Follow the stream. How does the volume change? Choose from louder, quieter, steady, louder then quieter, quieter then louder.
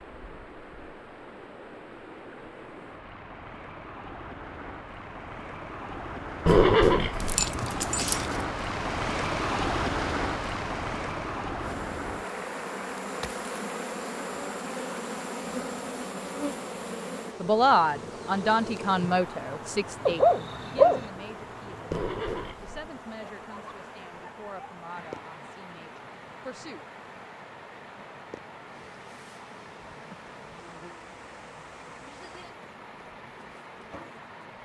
louder then quieter.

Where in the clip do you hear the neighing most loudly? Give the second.
7 s.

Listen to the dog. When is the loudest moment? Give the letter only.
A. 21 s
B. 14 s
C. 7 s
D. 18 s
A.